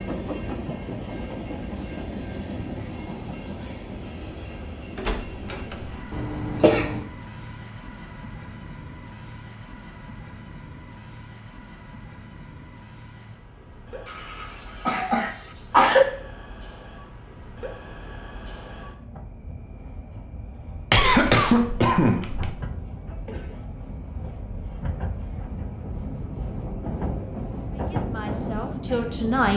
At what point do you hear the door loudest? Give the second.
6 s.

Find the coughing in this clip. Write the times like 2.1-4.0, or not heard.
6.1-7.0, 14.1-16.1, 20.9-22.5.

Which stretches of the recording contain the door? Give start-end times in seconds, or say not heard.
5.0-6.5.